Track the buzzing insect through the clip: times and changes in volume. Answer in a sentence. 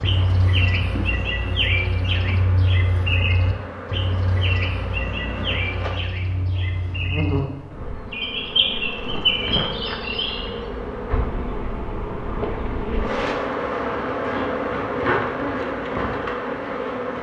You can hear the buzzing insect from 0.0 to 17.1 s, getting louder.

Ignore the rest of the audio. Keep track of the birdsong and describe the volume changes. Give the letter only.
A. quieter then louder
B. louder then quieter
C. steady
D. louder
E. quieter
A.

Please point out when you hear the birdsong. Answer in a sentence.
The birdsong can be heard from 0.0 to 10.6 s.